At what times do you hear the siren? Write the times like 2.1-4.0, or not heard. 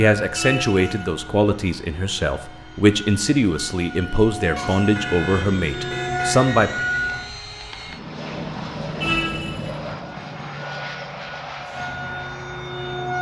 0.1-7.3, 9.9-13.1.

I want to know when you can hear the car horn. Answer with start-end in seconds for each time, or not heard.
0.3-0.9, 4.5-6.5, 9.0-9.7.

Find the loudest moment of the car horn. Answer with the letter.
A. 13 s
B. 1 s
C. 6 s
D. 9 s
D.